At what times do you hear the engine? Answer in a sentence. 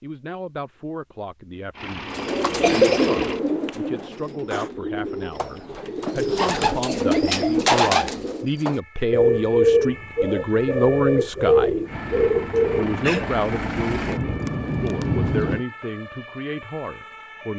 You can hear the engine from 1.8 to 4.7 s and from 11.8 to 15.7 s.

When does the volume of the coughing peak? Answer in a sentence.
The volume of the coughing peaks at 3 seconds.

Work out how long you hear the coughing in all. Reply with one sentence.
The coughing can be heard for 2 seconds in total.